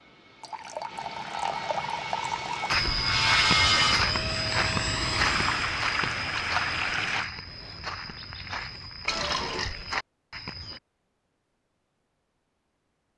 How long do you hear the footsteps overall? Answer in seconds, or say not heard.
8 s.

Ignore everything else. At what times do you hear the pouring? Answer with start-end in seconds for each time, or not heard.
0.4-2.8, 5.2-7.3, 9.1-9.8.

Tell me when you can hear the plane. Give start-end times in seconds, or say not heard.
0.0-5.8.